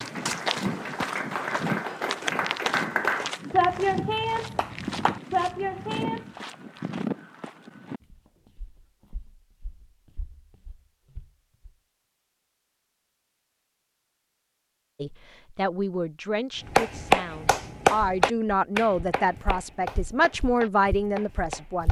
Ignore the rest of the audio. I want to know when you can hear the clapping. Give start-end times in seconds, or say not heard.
0.0-6.4, 16.6-21.8.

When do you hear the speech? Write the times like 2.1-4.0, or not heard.
15.0-21.8.